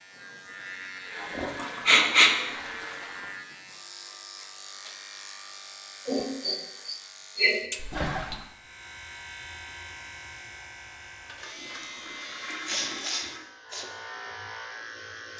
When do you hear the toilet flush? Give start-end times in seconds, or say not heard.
1.1-3.4, 7.8-8.4, 11.0-13.4.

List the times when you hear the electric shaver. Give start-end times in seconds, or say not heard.
0.0-15.3.